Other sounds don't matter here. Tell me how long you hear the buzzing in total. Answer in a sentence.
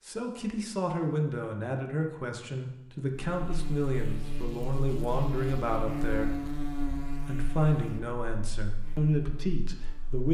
The buzzing can be heard for 7 seconds in total.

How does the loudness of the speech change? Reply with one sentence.
The loudness of the speech stays about the same.